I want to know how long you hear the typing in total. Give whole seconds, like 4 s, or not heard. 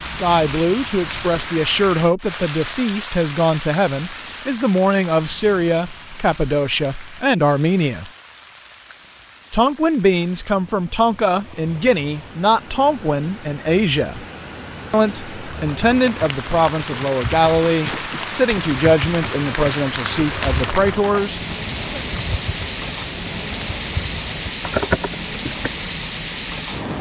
10 s.